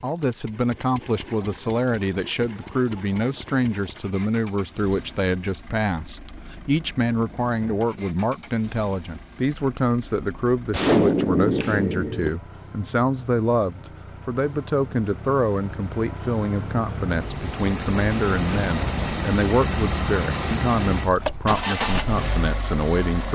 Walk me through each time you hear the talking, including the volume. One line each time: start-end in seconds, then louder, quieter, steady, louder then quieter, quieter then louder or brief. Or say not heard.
0.0-23.3 steady.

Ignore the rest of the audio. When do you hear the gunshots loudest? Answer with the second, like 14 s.
11 s.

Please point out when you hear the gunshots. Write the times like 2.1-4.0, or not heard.
10.7-12.4.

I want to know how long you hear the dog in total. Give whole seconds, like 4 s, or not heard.
not heard.